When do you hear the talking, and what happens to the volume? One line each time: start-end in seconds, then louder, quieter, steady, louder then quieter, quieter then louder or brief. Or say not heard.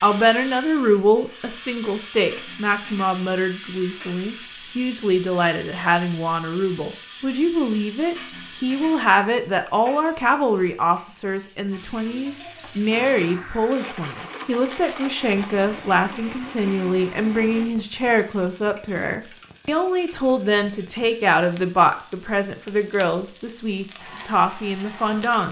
0.0-25.4 steady.